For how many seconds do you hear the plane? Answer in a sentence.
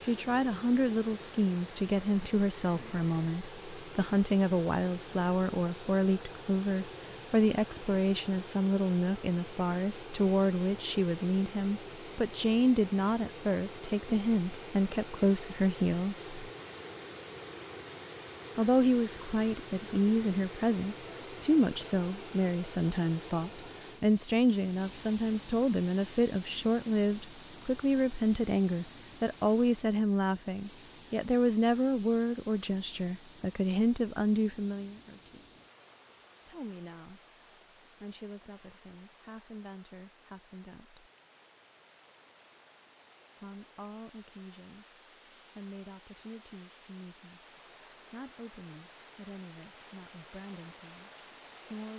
The plane can't be heard in this clip.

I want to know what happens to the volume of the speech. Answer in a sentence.
The volume of the speech goes down.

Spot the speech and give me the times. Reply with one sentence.
The speech can be heard from 0.1 to 16.4 s, from 18.6 to 35.6 s, from 36.5 to 41.1 s and from 43.4 to 51.9 s.